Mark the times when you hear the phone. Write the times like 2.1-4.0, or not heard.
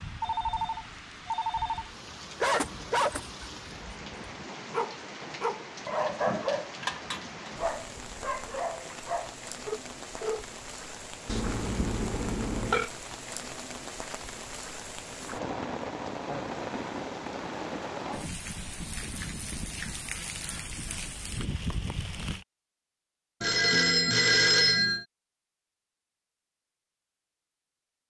0.2-1.9, 11.2-12.9, 23.4-25.1.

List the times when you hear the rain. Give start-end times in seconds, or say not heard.
0.0-22.4.